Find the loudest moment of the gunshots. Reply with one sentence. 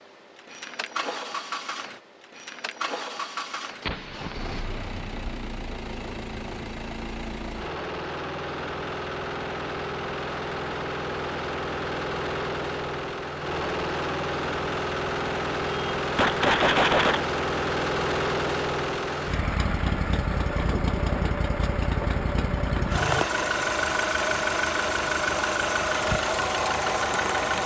The volume of the gunshots peaks at 17 seconds.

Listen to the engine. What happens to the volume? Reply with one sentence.
The volume of the engine goes up.